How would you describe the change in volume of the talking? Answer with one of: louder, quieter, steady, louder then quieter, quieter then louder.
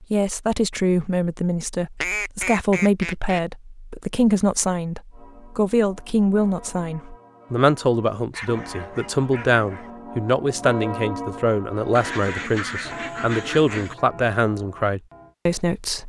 steady.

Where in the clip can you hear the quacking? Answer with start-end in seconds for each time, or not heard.
2.0-3.4, 11.9-13.9.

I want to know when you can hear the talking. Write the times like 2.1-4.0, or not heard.
0.0-16.0.